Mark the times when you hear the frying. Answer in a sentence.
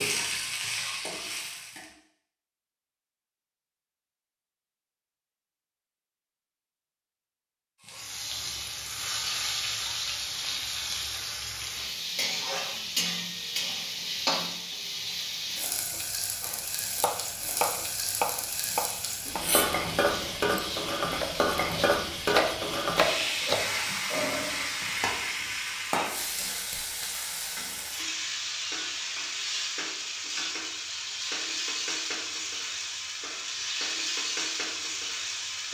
The frying can be heard from 0.0 to 1.9 s and from 7.8 to 35.6 s.